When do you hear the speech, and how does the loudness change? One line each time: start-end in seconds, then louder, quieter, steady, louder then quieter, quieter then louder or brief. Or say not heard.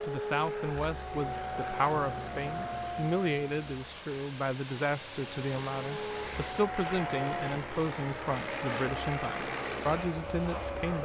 0.0-10.9 steady.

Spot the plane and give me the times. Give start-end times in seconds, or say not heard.
0.0-10.9.